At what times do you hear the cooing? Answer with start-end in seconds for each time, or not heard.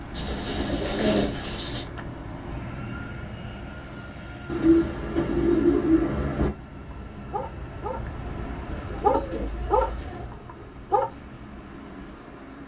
0.1-1.9, 4.5-6.5, 8.7-10.2.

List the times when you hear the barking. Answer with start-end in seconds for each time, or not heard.
6.9-8.0, 8.6-11.1.